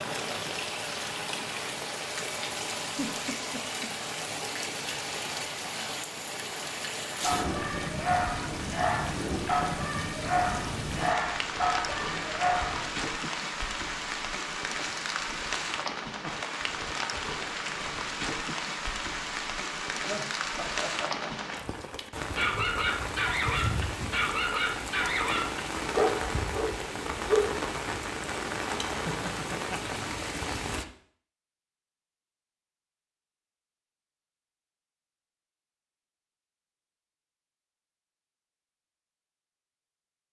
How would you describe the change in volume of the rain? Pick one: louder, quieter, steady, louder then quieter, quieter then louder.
steady.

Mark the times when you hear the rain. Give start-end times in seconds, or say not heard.
0.0-30.9.